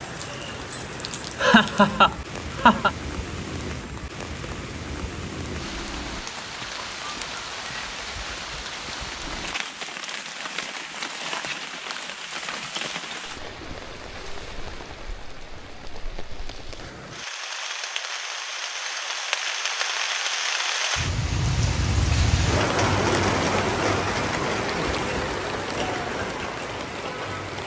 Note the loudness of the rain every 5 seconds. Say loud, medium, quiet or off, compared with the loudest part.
medium, medium, medium, medium, loud, medium.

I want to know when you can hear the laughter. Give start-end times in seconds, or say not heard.
1.4-2.9.